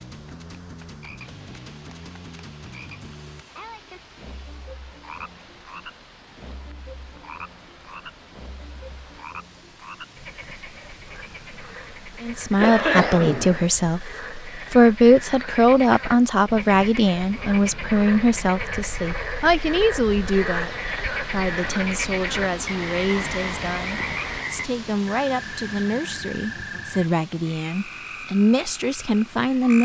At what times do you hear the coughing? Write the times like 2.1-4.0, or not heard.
12.6-13.7.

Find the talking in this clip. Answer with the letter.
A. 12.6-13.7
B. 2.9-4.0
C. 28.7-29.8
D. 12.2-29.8
D.